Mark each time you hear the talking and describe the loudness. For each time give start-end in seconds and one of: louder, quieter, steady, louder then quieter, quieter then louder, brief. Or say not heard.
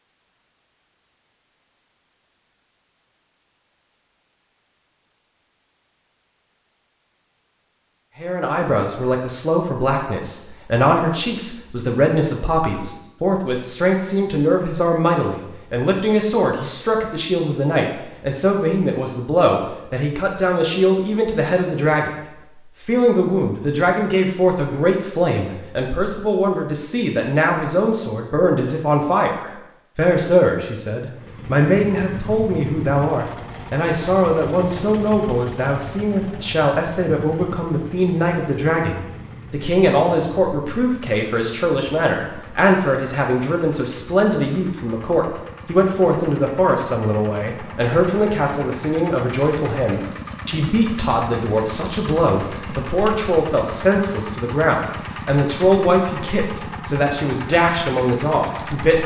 8.2-59.0 steady.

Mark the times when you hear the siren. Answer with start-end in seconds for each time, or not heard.
not heard.